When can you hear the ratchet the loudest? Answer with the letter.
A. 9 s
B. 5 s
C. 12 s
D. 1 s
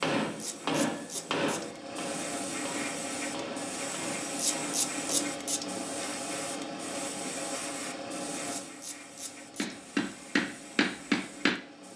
B.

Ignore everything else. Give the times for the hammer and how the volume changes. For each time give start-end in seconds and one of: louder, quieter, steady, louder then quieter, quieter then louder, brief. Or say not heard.
0.0-5.3 quieter
9.6-11.9 brief.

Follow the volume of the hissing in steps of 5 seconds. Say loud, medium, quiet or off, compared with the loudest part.
loud, loud, medium.